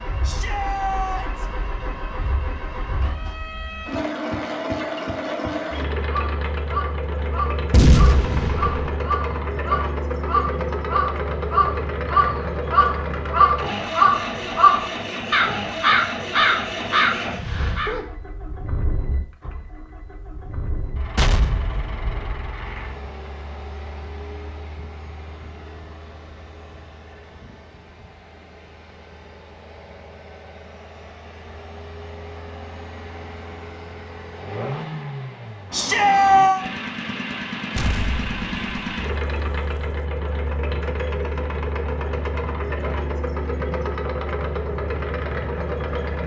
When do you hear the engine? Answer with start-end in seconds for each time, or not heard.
0.0-46.2.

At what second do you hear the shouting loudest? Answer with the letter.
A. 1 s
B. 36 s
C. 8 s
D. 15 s
B.